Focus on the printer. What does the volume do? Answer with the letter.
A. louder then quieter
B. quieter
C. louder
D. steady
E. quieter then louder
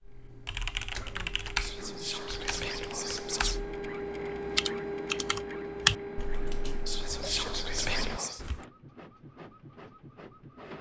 A.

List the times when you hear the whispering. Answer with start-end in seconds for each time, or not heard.
1.6-3.6, 6.8-8.4.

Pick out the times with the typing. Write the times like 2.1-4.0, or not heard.
0.1-8.7.